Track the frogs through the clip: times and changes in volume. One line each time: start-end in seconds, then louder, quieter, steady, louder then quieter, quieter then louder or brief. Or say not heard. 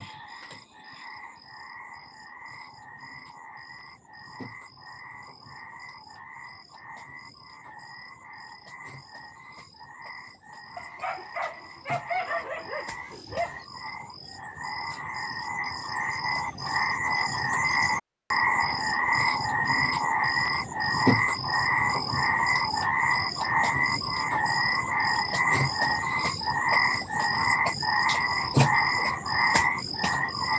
0.0-30.5 louder.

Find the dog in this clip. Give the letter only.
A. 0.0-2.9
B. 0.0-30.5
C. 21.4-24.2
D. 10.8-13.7
D.